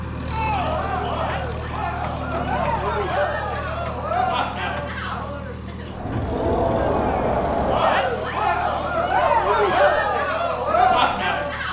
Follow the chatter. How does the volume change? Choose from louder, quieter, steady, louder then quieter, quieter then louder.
louder.